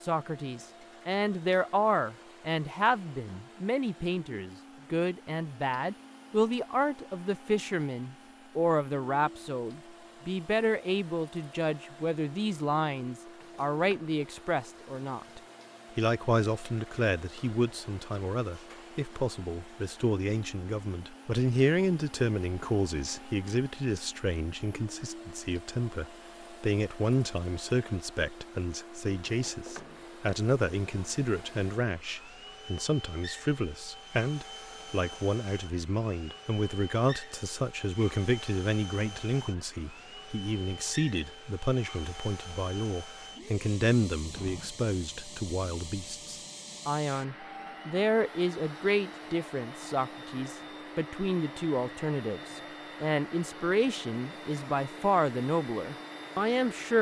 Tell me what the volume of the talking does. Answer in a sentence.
The volume of the talking stays about the same.